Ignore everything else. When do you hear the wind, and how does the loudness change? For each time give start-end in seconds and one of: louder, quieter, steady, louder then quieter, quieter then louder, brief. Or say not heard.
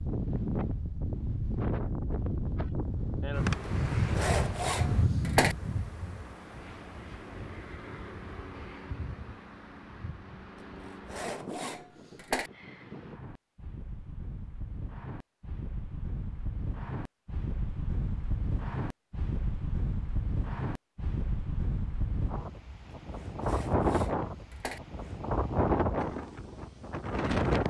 0.0-27.6 quieter then louder.